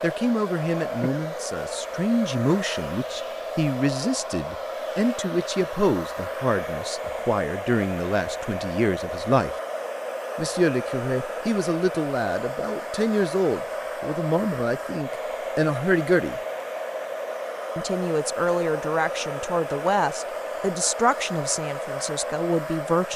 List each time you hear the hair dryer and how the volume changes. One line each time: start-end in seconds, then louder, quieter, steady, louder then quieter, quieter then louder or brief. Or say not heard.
0.0-23.1 steady.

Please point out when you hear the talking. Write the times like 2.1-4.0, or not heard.
0.0-9.6, 10.3-16.4, 17.8-23.1.